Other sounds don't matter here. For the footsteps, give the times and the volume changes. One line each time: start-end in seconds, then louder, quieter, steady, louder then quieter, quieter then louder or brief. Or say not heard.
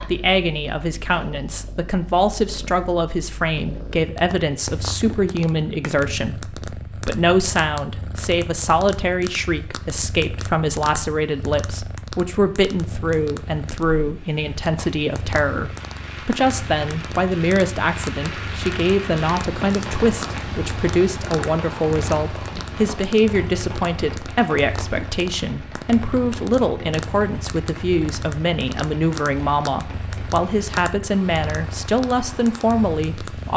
not heard.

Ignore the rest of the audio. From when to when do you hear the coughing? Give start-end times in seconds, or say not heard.
not heard.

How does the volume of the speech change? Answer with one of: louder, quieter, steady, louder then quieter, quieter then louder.
steady.